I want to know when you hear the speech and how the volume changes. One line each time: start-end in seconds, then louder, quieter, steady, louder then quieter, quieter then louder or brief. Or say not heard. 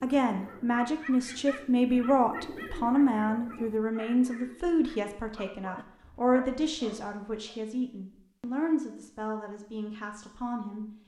0.0-10.8 quieter.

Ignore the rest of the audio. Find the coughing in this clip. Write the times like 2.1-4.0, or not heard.
not heard.